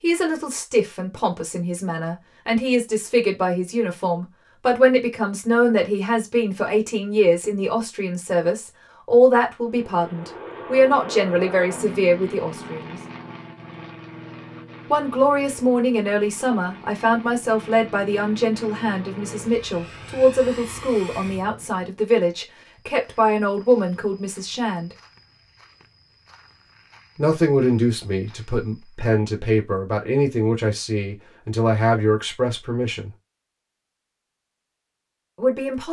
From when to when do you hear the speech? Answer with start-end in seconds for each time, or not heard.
0.0-13.0, 14.9-24.9, 27.1-33.1, 35.4-35.8.